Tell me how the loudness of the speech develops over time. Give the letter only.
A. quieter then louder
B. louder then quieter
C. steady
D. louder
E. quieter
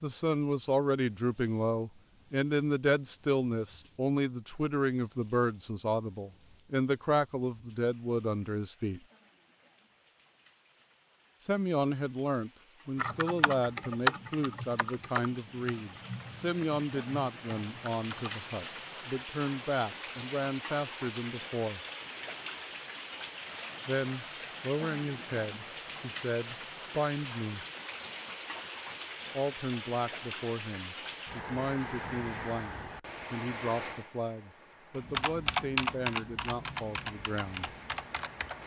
E.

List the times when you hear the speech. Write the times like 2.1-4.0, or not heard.
0.0-9.0, 11.4-21.8, 23.9-27.6, 29.4-37.7.